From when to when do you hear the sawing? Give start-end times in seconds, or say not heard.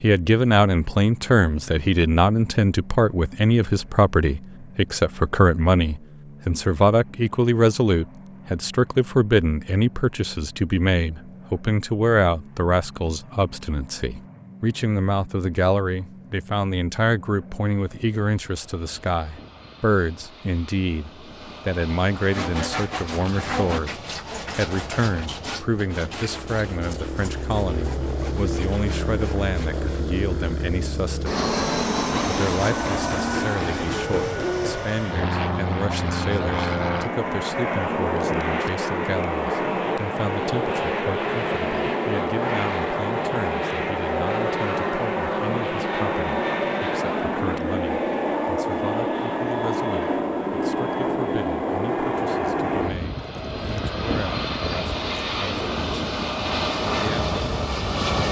22.1-30.1.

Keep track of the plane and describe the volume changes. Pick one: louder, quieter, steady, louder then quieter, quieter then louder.
louder.